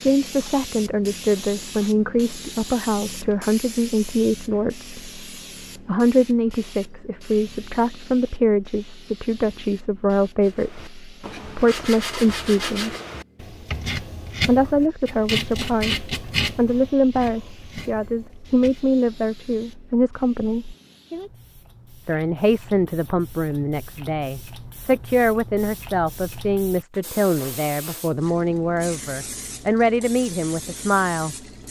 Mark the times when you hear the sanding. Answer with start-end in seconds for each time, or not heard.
10.4-18.8.